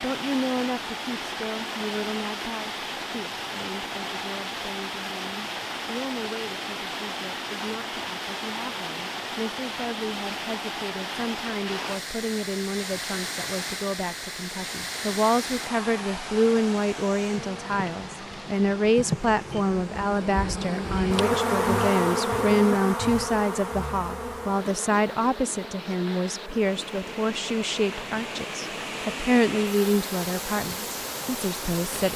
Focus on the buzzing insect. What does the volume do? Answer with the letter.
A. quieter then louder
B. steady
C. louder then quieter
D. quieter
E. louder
C.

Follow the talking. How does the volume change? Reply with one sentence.
The loudness of the talking goes up.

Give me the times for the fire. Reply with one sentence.
The fire can't be heard in this clip.